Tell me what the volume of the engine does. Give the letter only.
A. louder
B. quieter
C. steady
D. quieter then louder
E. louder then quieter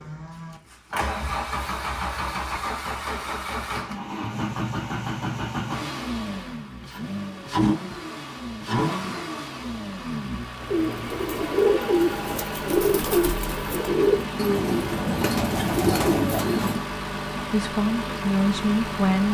C.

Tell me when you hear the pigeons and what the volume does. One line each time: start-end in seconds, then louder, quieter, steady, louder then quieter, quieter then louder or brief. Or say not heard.
10.6-16.8 steady.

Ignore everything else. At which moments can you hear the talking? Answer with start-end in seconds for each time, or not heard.
17.5-19.3.